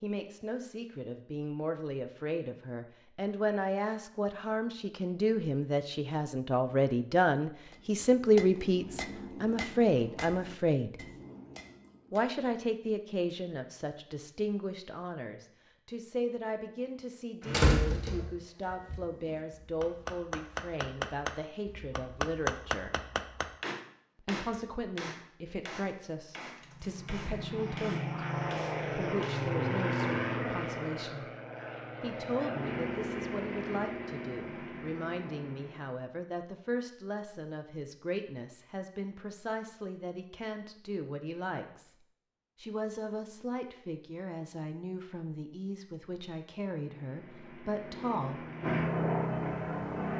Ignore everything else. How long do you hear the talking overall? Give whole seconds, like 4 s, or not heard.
44 s.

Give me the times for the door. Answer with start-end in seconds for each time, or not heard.
17.4-18.3.